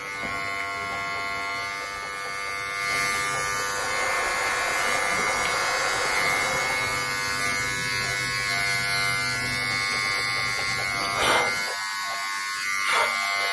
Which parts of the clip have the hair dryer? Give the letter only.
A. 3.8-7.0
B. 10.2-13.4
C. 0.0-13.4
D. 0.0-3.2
A.